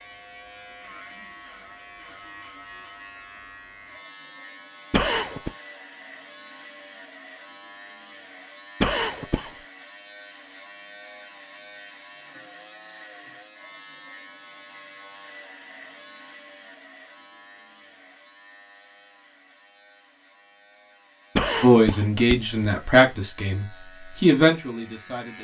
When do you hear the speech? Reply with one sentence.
You can hear the speech from 21.6 to 25.3 s.